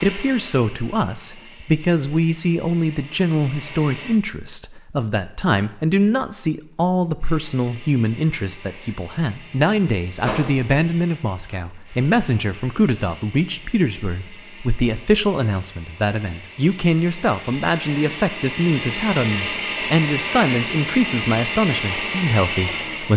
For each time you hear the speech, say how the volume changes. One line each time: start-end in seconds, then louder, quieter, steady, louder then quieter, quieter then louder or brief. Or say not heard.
0.0-23.1 steady.